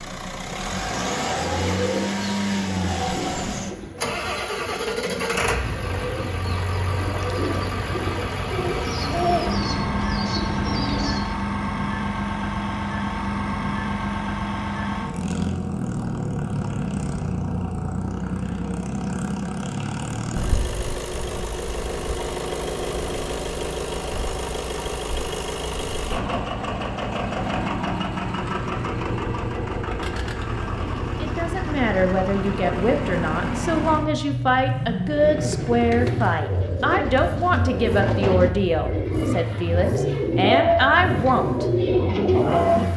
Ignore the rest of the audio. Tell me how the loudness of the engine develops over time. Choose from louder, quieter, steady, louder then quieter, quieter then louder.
steady.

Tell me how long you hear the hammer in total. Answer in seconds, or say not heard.
not heard.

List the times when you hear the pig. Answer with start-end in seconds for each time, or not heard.
not heard.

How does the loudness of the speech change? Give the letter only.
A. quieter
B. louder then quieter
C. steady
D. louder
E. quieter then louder
C.